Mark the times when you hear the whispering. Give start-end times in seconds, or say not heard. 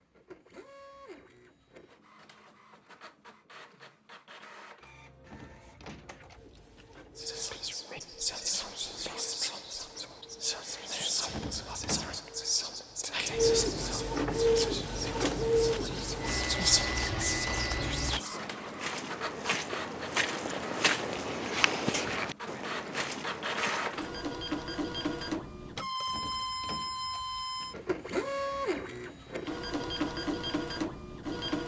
7.2-18.4.